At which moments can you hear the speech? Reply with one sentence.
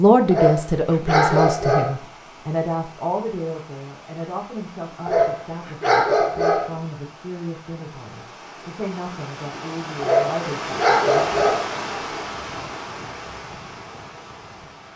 The speech can be heard from 0.0 to 11.3 s.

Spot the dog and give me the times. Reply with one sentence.
The dog can be heard from 0.3 to 2.0 s, from 5.0 to 6.8 s and from 10.0 to 11.7 s.